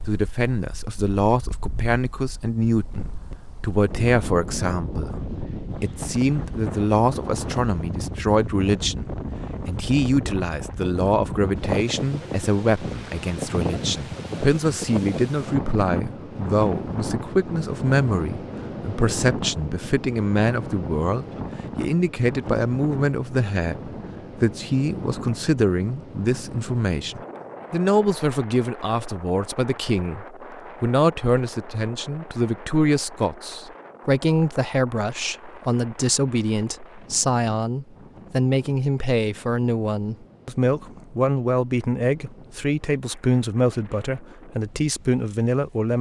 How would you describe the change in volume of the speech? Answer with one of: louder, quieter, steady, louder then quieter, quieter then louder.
steady.